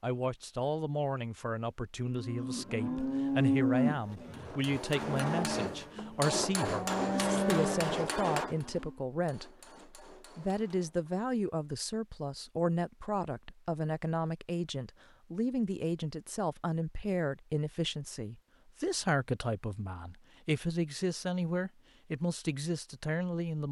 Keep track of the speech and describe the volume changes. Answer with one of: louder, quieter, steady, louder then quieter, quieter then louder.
steady.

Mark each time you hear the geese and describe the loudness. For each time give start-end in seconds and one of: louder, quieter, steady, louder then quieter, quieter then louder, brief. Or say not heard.
not heard.